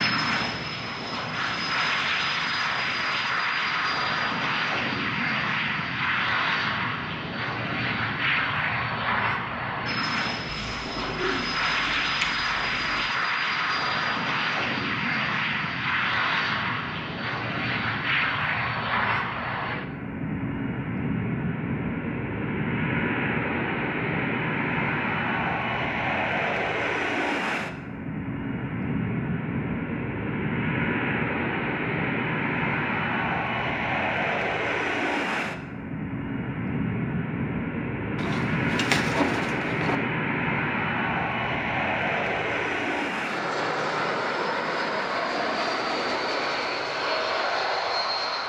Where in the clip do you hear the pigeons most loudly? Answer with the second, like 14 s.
39 s.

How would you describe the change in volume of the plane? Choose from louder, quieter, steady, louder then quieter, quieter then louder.
steady.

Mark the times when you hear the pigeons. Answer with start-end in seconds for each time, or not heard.
10.4-13.1, 38.1-40.0.